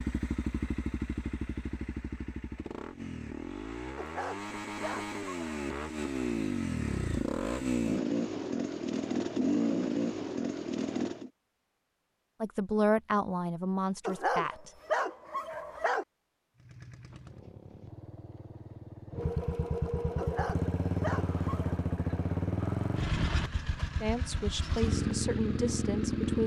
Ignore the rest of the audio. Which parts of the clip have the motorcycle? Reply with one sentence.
The motorcycle can be heard from 0.0 to 11.3 s and from 16.6 to 26.4 s.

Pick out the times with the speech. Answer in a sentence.
The speech can be heard from 12.4 to 14.7 s and from 24.0 to 26.4 s.